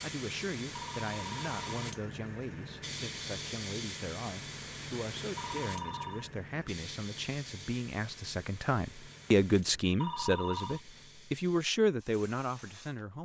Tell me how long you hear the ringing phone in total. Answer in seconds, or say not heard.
3 s.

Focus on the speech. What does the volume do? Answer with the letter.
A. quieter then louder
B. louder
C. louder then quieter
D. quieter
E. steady
B.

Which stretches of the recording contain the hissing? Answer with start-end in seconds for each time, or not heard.
0.0-13.1.